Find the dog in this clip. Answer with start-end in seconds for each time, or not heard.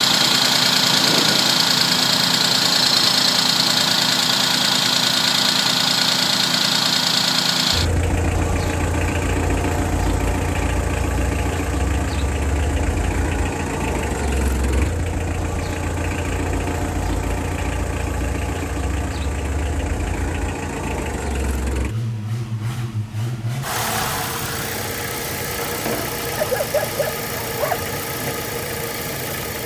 26.4-27.9.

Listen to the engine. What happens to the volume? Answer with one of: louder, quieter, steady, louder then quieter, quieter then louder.
quieter.